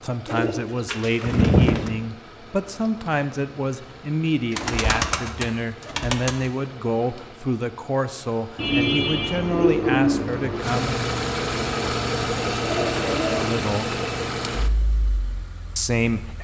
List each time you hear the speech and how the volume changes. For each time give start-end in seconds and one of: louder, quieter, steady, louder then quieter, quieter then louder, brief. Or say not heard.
0.0-11.1 steady
13.3-13.9 brief
15.8-16.3 brief.